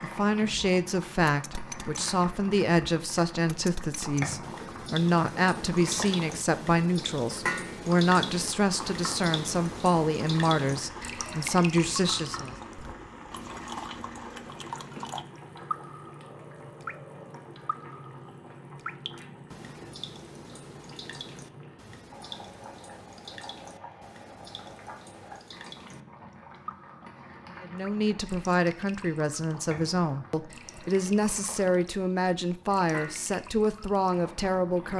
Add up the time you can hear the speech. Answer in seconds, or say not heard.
20 s.